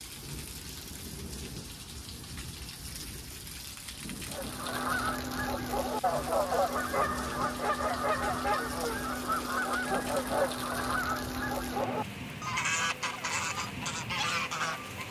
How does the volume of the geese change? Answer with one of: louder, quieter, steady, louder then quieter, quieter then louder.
steady.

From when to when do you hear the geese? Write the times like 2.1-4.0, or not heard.
4.3-15.0.